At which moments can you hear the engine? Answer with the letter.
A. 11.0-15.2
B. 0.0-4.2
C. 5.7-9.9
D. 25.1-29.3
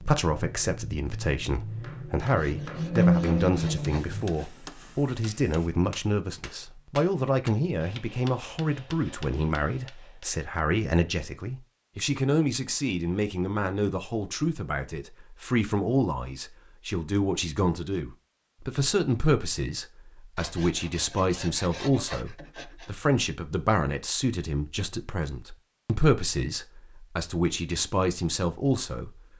B.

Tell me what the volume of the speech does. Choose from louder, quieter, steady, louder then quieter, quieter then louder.
steady.